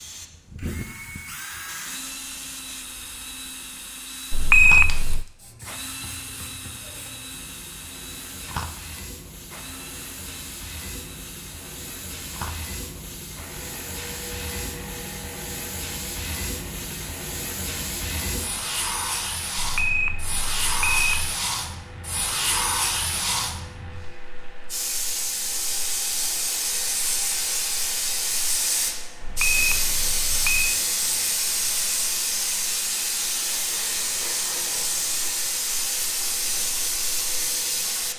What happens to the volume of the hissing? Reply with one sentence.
The loudness of the hissing goes up.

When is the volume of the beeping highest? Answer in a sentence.
The volume of the beeping peaks at 5 seconds.